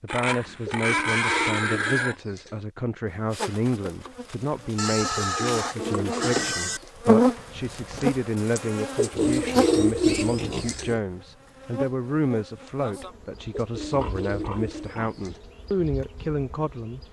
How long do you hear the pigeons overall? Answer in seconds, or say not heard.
8 s.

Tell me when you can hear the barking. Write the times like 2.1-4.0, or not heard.
not heard.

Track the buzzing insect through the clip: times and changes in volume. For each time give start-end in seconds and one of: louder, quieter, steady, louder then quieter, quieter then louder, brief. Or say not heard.
3.0-17.0 louder then quieter.